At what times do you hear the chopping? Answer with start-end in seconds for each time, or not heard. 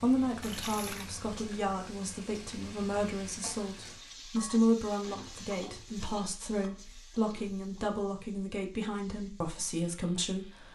not heard.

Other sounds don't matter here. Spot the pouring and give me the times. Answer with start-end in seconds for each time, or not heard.
0.4-1.1.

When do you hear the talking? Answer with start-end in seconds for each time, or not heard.
0.0-10.7.